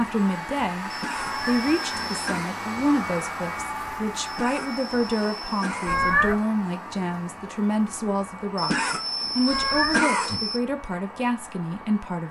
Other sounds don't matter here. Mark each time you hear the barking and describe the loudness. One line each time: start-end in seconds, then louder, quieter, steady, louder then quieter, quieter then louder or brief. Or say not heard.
not heard.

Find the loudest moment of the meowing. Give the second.
6 s.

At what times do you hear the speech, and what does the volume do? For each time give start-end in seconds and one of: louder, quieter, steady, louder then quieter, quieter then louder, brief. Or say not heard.
0.0-12.2 steady.